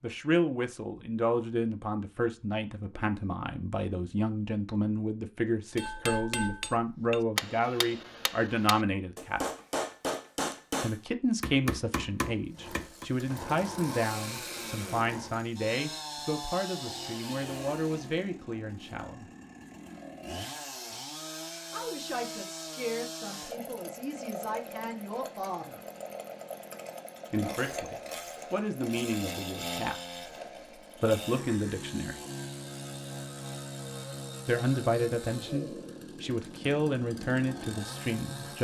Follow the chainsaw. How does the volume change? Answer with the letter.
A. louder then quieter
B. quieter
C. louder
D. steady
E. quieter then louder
D.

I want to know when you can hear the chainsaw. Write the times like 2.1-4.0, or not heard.
12.5-38.5.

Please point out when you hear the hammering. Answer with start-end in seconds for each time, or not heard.
5.8-13.1.